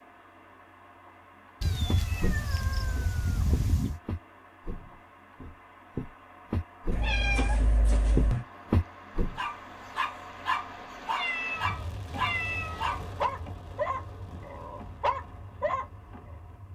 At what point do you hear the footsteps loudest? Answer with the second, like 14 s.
8 s.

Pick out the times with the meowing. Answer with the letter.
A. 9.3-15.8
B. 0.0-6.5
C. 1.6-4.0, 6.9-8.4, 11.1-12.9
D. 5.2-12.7
C.